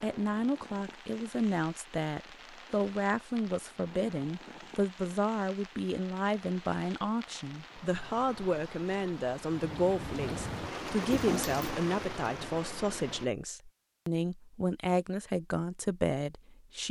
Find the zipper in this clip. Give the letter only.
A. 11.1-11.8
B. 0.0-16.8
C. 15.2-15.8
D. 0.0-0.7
A.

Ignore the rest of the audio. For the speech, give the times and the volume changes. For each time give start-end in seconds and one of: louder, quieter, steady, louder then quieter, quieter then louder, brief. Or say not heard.
0.0-16.8 steady.